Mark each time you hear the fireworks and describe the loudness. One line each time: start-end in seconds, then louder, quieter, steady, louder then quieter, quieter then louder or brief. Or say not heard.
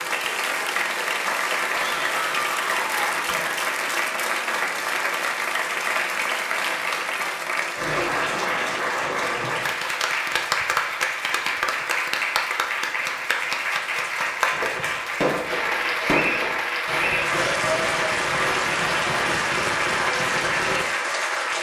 14.5-20.9 steady.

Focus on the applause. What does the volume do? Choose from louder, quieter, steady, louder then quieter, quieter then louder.
steady.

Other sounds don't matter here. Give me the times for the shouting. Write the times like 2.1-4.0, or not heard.
1.7-3.2.